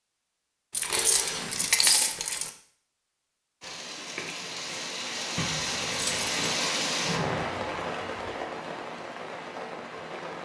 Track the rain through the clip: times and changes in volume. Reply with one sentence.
You can hear the rain from 3.6 to 10.3 s, getting louder then quieter.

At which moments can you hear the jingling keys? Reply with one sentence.
The jingling keys can be heard from 0.7 to 2.5 s and from 5.3 to 6.5 s.